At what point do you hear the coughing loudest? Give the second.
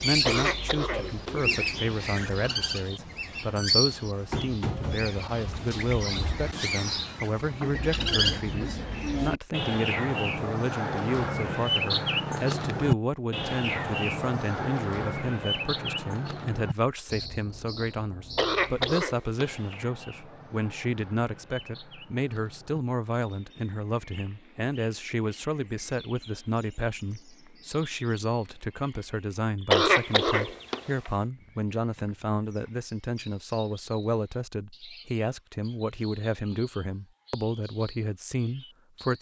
30 s.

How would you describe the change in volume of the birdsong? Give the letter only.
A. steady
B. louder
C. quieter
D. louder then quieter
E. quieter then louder
C.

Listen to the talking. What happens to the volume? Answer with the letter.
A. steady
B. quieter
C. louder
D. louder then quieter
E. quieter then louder
A.